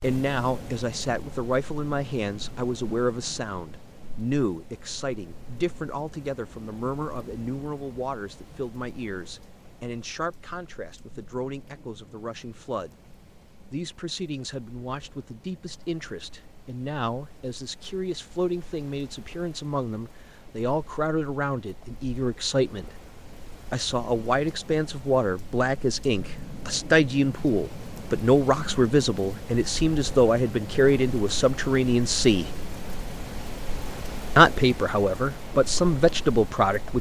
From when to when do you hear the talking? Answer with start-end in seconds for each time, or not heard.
0.0-13.0, 13.7-22.9, 23.7-32.5, 34.4-36.9.